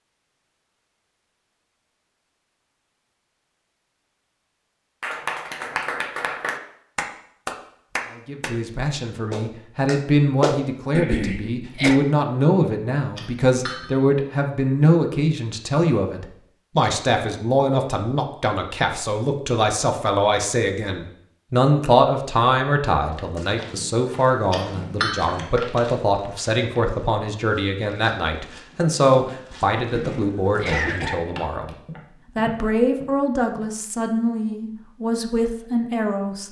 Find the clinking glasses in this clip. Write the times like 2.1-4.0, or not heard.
13.2-14.0, 24.5-25.6.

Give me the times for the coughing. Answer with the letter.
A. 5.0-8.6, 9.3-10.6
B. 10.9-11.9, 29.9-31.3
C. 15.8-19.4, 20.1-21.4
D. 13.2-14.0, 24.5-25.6
B.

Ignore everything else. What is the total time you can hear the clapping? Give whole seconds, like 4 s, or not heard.
5 s.